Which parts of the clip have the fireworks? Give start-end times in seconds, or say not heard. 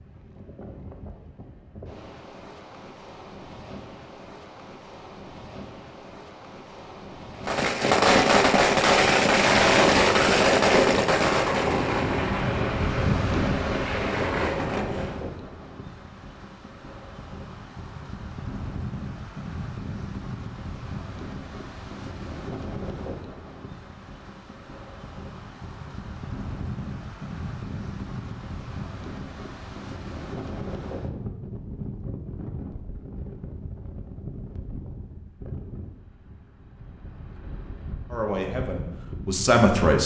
7.5-15.2.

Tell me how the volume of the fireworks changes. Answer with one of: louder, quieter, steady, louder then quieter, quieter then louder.
quieter.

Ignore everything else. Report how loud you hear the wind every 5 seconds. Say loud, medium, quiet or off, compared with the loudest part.
quiet, quiet, loud, medium, medium, medium, medium, quiet.